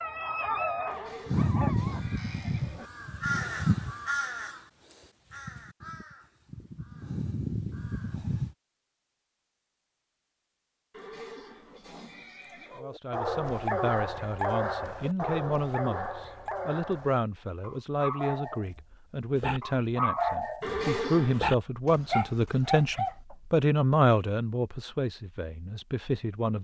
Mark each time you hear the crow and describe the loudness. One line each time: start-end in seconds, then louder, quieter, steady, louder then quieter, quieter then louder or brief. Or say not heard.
1.2-8.6 quieter then louder.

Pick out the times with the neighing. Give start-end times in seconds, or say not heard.
0.8-2.9, 10.9-12.8, 20.6-21.5.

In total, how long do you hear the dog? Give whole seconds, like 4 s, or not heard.
13 s.